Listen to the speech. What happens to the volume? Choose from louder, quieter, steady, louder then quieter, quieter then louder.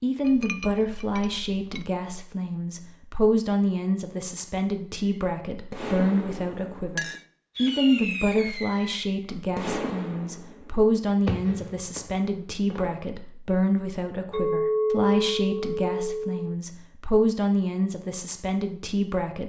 steady.